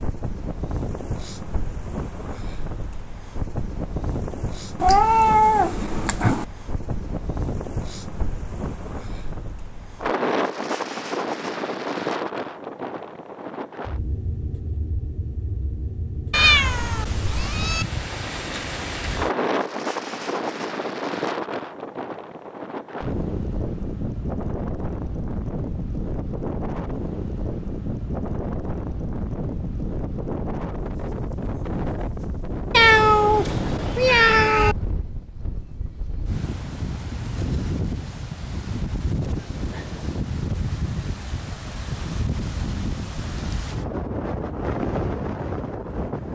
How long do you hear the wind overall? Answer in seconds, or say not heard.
46 s.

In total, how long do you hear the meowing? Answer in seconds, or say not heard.
5 s.